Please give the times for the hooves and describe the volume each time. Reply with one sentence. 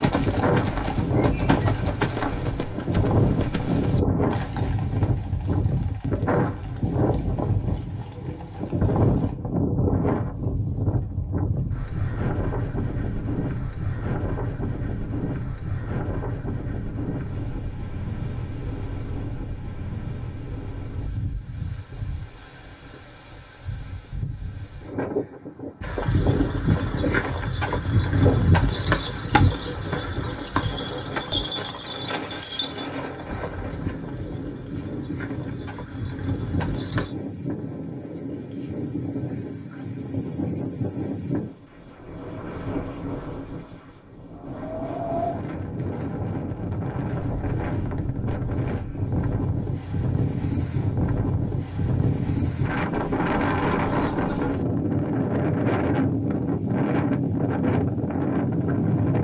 You can hear the hooves from 0.0 to 9.3 s, getting quieter; and from 25.8 to 37.1 s, getting quieter.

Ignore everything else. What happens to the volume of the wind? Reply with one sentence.
The volume of the wind goes down, then up.